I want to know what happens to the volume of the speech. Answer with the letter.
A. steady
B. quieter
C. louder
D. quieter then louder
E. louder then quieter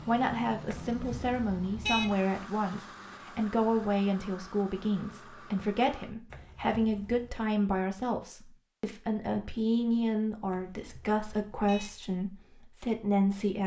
A.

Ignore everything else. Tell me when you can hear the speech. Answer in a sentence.
You can hear the speech from 0.1 to 13.6 s.